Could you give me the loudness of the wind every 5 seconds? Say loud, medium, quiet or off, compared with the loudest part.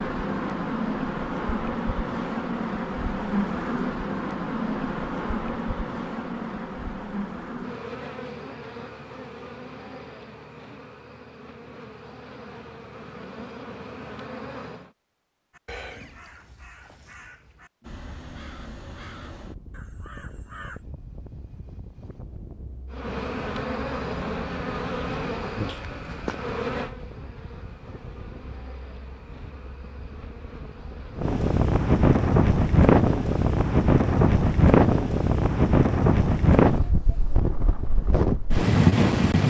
off, off, off, quiet, quiet, quiet, loud, loud.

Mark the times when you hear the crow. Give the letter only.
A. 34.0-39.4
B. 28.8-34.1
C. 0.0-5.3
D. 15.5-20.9
D.